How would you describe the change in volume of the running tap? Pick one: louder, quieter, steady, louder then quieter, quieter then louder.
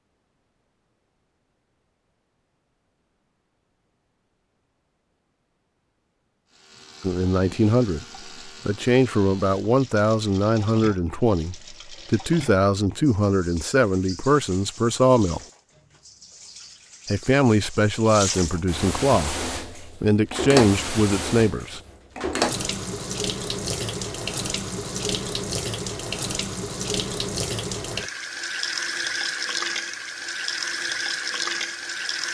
louder.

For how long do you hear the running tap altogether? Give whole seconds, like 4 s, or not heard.
26 s.